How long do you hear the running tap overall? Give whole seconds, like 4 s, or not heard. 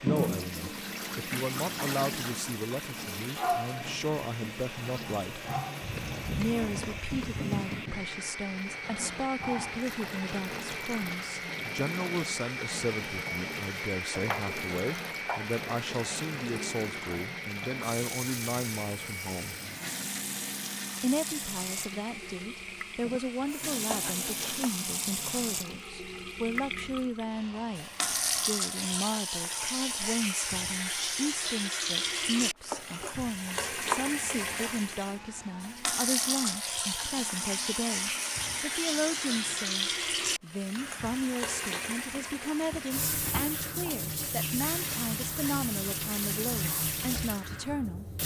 48 s.